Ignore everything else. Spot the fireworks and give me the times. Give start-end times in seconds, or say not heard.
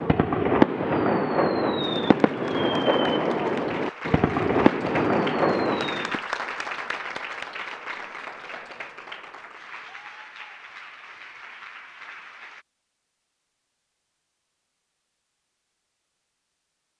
0.0-6.2.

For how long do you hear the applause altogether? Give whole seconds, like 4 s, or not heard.
11 s.